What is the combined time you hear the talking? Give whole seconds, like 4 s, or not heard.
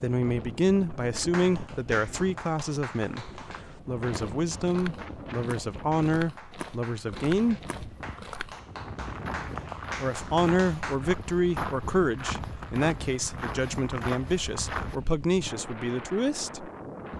14 s.